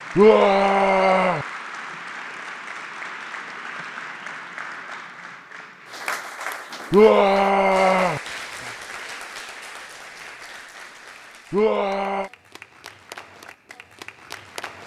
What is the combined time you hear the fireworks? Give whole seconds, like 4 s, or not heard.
not heard.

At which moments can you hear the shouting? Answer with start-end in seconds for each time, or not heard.
0.1-1.4, 6.9-8.2, 11.5-12.3.